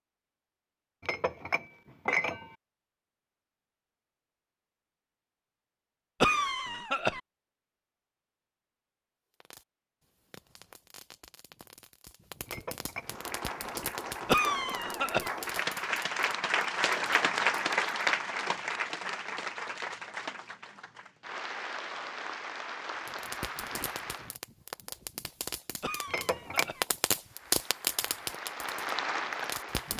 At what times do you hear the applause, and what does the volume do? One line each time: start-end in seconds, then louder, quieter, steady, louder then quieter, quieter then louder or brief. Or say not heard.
13.0-24.4 louder then quieter
27.2-29.9 brief.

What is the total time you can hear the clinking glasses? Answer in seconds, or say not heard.
3 s.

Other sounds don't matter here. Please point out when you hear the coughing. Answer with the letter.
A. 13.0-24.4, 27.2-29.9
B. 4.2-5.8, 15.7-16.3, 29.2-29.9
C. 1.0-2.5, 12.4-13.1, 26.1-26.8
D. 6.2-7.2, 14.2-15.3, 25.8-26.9
D.